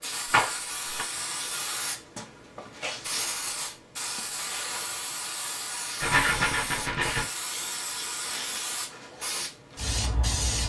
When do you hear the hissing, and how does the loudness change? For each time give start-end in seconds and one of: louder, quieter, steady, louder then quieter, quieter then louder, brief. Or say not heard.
0.0-10.6 steady.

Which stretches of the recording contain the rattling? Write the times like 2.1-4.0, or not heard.
0.3-1.1, 6.0-7.3.